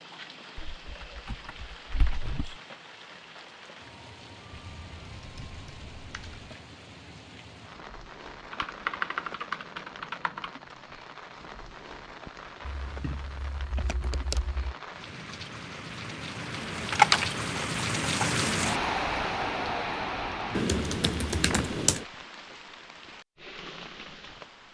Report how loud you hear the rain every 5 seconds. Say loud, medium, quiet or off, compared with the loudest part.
quiet, quiet, quiet, loud, medium.